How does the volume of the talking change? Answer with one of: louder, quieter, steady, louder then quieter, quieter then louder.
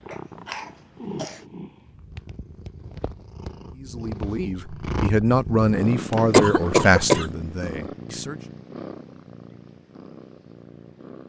louder then quieter.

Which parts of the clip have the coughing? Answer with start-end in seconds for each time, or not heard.
0.1-1.4, 6.1-7.3.